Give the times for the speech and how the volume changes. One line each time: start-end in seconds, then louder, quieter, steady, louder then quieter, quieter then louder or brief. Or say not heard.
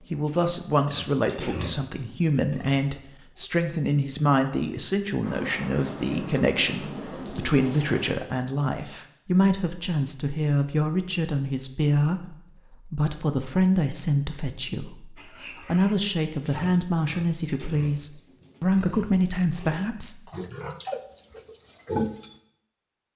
0.1-20.1 steady.